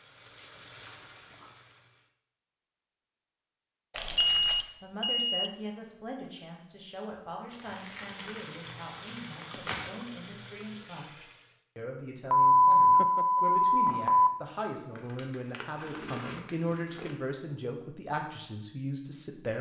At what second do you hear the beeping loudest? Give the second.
13 s.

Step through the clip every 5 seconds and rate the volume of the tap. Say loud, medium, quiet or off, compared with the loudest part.
medium, loud, loud, off.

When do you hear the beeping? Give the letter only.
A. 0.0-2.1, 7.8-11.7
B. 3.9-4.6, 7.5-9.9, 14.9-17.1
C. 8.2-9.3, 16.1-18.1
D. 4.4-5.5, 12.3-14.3
D.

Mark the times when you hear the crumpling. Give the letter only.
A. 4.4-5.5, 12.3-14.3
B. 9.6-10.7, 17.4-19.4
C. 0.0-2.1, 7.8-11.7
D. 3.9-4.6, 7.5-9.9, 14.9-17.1
D.